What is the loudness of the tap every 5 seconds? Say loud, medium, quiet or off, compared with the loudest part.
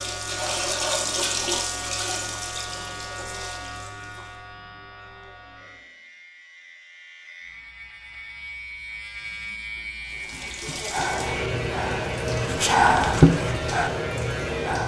loud, off, loud.